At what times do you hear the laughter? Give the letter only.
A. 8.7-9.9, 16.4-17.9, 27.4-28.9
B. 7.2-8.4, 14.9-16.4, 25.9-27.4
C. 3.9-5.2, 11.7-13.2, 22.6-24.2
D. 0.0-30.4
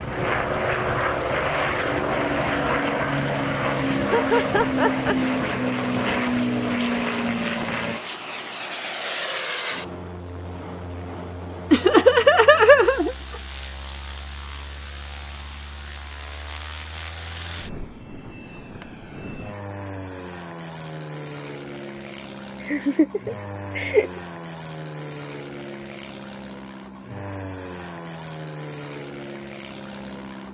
C.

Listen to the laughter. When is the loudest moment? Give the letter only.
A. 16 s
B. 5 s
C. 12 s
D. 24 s
C.